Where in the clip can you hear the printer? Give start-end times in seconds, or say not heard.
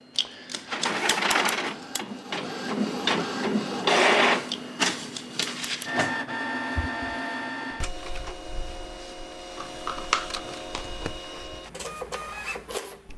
0.0-13.1.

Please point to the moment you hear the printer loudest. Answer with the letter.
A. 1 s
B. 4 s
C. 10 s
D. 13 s
B.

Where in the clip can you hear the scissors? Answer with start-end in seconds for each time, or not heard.
0.1-2.0, 4.5-5.9, 9.6-11.1.